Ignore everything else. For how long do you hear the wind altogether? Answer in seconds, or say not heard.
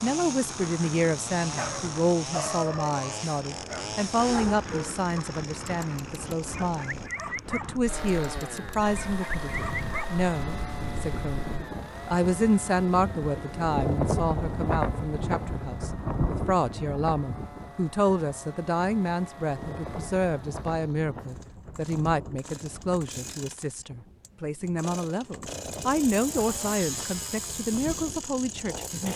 29 s.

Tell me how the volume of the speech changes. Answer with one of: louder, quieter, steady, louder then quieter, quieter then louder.
steady.